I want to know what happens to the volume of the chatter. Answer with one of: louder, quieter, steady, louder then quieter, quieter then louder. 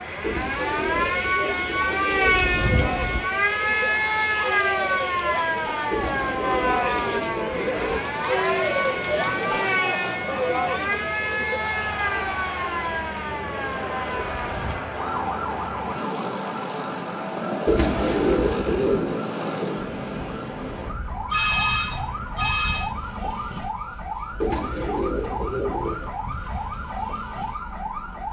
louder then quieter.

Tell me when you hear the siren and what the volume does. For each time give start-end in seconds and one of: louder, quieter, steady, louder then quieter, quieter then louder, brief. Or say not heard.
0.0-28.2 quieter.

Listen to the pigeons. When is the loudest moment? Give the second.
18 s.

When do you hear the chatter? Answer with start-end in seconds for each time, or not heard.
0.0-15.4.